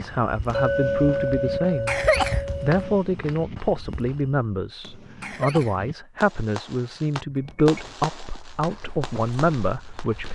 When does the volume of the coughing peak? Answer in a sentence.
The loudest moment of the coughing is at 2 seconds.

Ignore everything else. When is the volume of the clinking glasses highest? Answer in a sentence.
The volume of the clinking glasses peaks at 1 second.